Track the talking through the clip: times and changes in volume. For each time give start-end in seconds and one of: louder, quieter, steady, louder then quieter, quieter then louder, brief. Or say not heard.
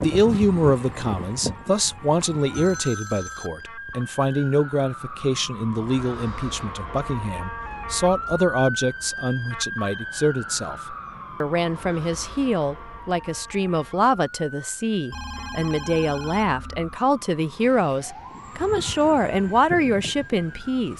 0.0-20.9 steady.